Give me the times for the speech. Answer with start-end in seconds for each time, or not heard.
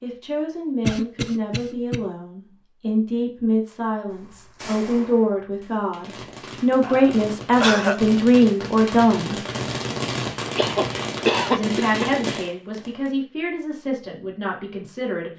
0.0-9.4, 11.5-15.3.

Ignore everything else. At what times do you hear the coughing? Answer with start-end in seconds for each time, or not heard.
0.8-2.0, 6.8-8.1, 10.6-12.4.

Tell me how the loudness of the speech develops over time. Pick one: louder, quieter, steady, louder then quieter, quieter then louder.
louder then quieter.